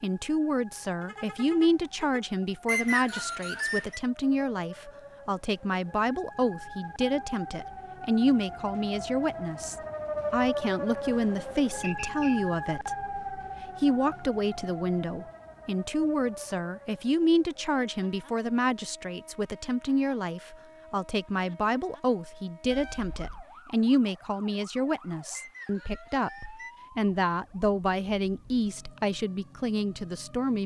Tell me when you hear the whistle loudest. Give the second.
3 s.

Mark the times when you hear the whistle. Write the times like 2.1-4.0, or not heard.
2.6-4.0, 11.8-12.4, 25.3-26.8.